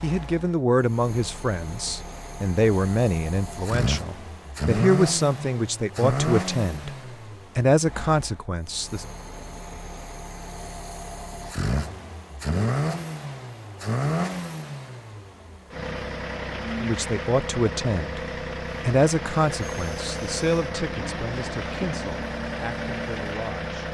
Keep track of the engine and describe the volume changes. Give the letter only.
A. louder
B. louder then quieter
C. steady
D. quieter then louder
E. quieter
C.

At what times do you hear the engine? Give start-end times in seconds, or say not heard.
0.0-23.8.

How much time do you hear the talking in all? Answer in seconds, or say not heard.
15 s.